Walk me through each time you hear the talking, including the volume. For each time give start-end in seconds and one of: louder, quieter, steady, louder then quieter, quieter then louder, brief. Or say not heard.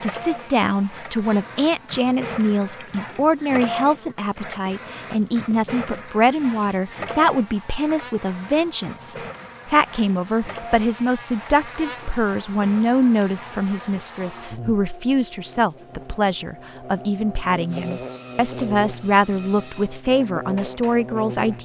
0.0-21.6 steady.